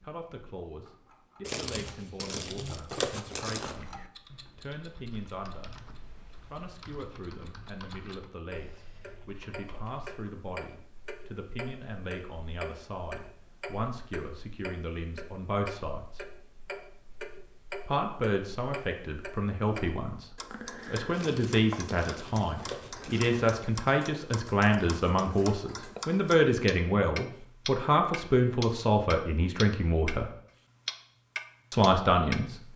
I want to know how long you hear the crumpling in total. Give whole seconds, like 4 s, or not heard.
5 s.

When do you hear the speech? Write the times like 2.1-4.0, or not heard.
0.0-5.7, 6.5-16.2, 17.9-30.3, 31.7-32.5.